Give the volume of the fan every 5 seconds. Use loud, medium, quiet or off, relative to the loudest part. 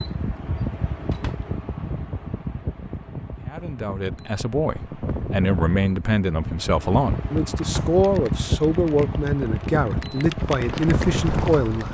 medium, loud, loud.